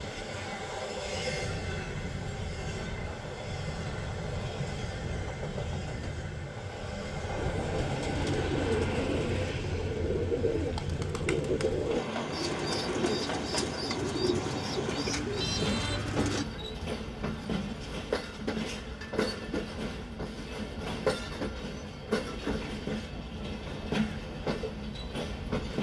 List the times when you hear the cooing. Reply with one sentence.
You can hear the cooing from 7.3 to 16.4 s.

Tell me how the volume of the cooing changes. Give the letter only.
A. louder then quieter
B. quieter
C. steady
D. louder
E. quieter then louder
C.